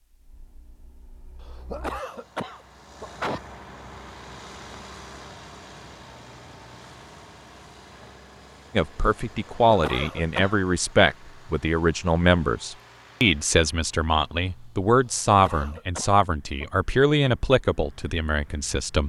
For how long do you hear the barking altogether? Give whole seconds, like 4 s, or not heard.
not heard.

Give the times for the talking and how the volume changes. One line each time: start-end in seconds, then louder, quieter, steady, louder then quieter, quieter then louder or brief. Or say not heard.
8.7-19.0 steady.